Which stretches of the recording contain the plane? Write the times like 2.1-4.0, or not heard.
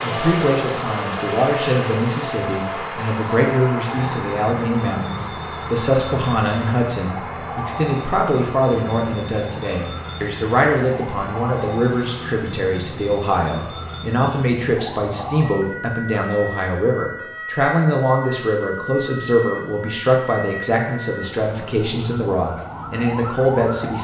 0.0-14.2.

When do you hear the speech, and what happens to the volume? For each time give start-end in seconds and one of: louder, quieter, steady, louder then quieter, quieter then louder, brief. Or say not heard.
0.0-23.9 steady.